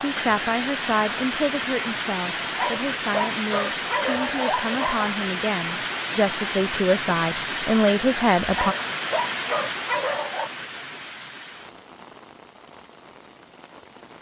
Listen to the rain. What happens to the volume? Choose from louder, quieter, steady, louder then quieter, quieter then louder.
quieter.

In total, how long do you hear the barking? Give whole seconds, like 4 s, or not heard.
5 s.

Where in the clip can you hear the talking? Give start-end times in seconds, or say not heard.
0.0-8.8.